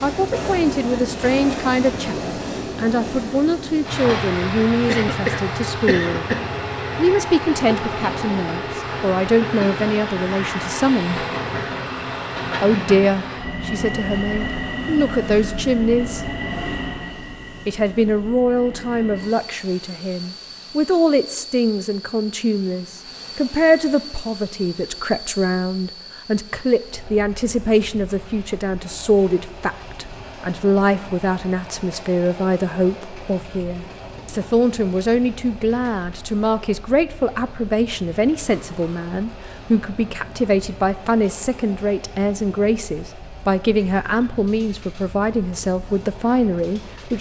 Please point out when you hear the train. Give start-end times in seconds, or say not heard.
0.0-47.1.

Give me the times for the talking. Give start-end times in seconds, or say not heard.
0.0-6.2, 7.0-11.2, 12.6-16.2, 17.6-47.1.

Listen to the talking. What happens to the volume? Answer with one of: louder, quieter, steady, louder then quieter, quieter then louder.
steady.